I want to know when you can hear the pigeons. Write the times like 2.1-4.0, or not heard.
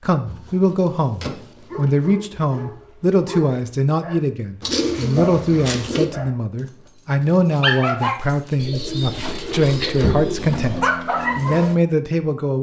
0.2-1.9, 4.6-6.0, 8.6-10.7.